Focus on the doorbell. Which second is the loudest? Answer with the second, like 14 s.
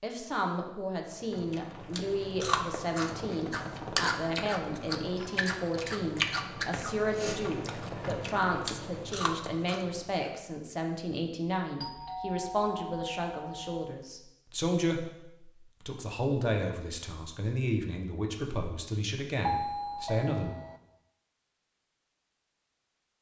20 s.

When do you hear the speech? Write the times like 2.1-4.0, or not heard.
0.0-20.5.